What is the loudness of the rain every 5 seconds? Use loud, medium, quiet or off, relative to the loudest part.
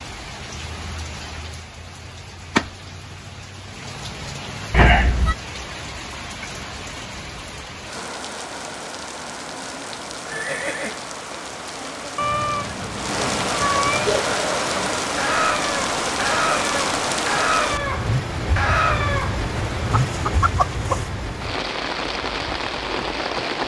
medium, medium, loud, loud, loud.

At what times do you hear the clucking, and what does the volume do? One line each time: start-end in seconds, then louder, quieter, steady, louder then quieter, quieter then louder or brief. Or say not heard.
14.1-21.1 steady.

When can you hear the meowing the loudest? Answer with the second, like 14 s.
5 s.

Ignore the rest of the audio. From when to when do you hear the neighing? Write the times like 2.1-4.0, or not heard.
10.2-11.0.